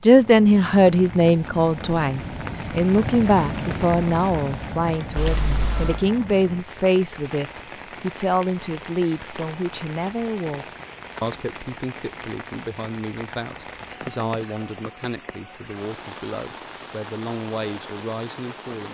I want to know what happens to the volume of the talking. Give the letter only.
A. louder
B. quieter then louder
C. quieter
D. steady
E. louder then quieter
C.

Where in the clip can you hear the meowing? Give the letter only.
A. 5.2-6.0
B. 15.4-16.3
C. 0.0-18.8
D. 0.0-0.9
A.